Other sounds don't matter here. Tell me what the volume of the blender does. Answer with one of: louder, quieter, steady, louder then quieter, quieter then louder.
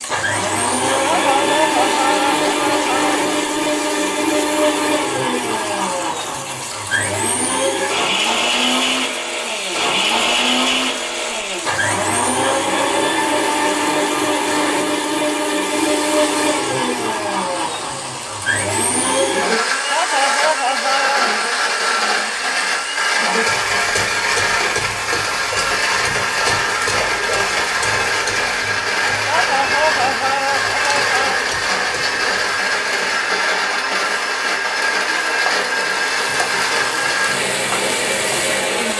steady.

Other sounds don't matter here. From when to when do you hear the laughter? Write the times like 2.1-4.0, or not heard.
1.0-3.1, 19.9-21.2, 29.2-31.4.